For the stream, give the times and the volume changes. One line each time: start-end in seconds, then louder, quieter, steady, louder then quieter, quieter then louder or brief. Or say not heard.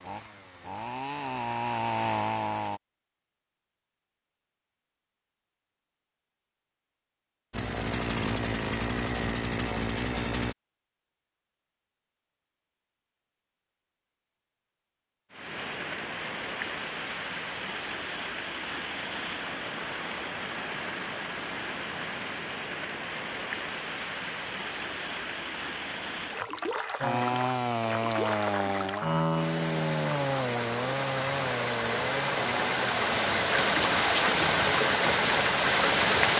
15.3-36.3 louder.